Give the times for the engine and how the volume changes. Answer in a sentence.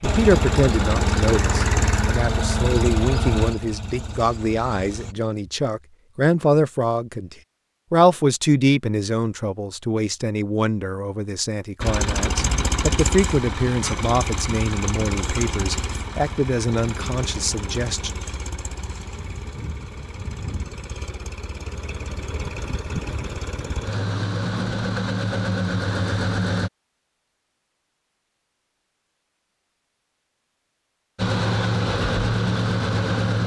The engine can be heard from 0.0 to 5.2 s, getting quieter; from 11.8 to 26.7 s, getting quieter then louder; and briefly from 31.1 to 33.4 s.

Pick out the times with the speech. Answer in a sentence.
The speech can be heard from 0.0 to 18.2 s.